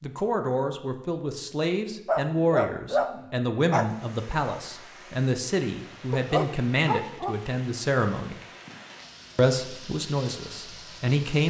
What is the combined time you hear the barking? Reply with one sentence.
The barking can be heard for 3 seconds in total.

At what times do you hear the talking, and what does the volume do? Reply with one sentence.
The talking can be heard from 0.0 to 8.3 s, at a steady volume; and briefly from 9.3 to 11.4 s.